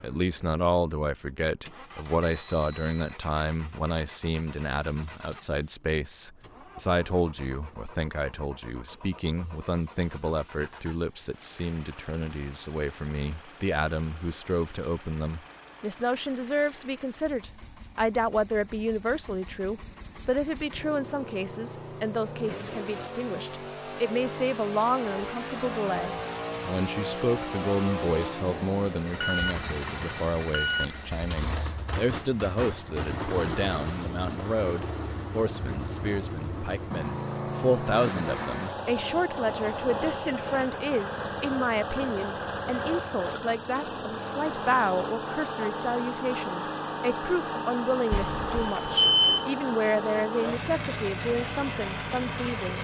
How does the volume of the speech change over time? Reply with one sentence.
The loudness of the speech stays about the same.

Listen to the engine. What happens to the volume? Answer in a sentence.
The loudness of the engine goes up.